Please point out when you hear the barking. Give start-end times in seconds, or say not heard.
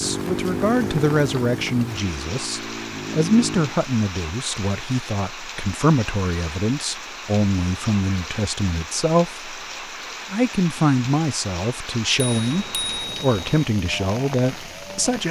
not heard.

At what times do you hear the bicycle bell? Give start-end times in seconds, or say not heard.
12.2-13.7.